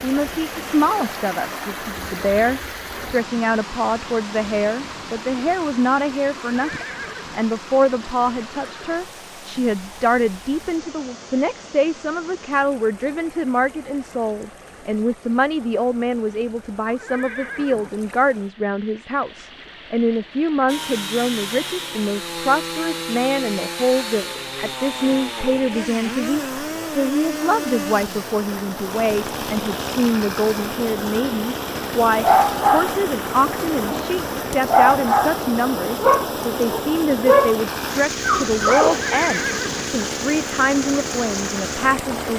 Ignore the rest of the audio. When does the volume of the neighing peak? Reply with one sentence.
The volume of the neighing peaks at 39 seconds.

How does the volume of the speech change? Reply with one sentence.
The loudness of the speech stays about the same.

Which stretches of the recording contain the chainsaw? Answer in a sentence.
The chainsaw can be heard from 20.6 to 42.3 s.